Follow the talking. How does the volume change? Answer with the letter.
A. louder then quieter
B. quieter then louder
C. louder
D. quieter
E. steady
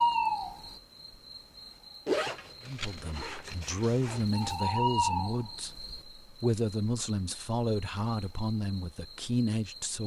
E.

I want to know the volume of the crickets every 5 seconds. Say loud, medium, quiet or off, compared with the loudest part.
loud, medium.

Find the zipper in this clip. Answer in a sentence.
You can hear the zipper from 2.0 to 4.5 s.